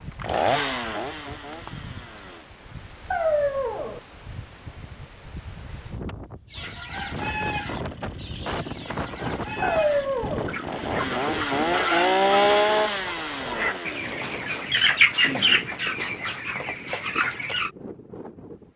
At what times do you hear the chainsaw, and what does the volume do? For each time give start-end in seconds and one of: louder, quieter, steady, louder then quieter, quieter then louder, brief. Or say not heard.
0.1-2.5 brief
6.9-16.2 louder then quieter.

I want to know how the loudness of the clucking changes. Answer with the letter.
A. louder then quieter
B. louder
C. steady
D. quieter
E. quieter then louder
A.